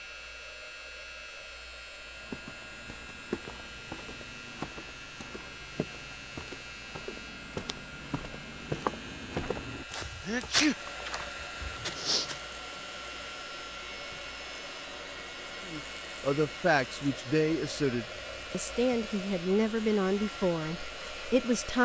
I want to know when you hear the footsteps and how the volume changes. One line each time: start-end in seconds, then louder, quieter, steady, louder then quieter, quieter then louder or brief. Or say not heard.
2.1-12.4 louder.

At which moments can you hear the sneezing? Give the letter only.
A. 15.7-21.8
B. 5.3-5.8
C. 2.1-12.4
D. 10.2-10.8
D.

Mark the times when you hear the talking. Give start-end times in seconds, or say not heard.
15.7-21.8.